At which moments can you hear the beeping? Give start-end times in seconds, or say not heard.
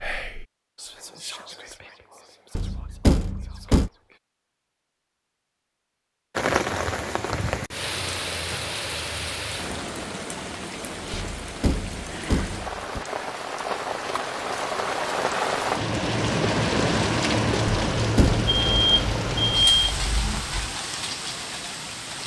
18.4-20.8.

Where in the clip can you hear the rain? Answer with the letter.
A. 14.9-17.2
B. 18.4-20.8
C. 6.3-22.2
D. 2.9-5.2
C.